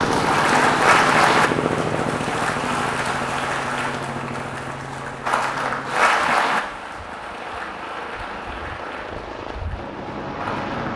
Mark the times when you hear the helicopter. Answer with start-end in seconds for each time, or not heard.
0.0-10.9.